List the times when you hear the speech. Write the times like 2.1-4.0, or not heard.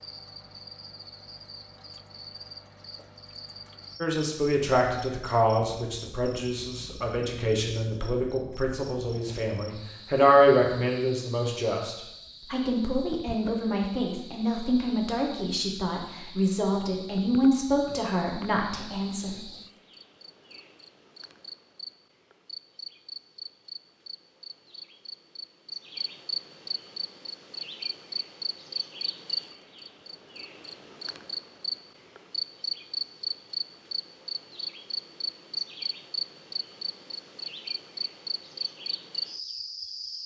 4.0-19.4.